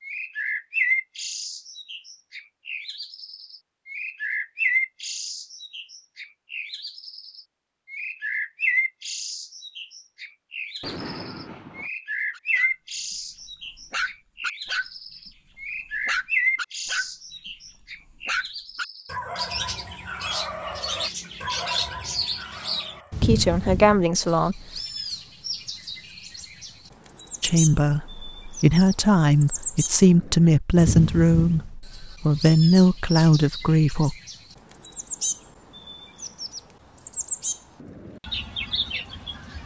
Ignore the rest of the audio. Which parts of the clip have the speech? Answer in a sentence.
The speech can be heard from 23.2 to 24.6 s and from 27.4 to 34.1 s.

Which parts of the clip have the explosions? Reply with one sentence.
The explosions can be heard from 10.8 to 11.9 s.